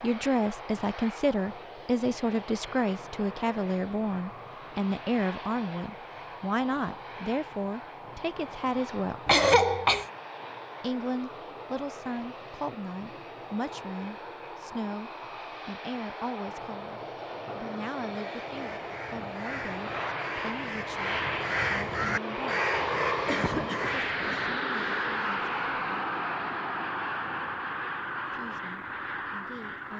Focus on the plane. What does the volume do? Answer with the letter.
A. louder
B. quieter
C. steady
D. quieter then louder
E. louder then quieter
A.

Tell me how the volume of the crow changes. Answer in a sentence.
The loudness of the crow goes up, then down.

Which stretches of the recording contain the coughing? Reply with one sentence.
The coughing can be heard from 9.2 to 10.1 s and from 23.2 to 24.6 s.